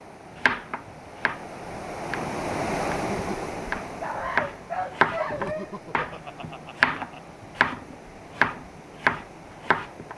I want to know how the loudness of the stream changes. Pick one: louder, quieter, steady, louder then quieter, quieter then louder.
louder then quieter.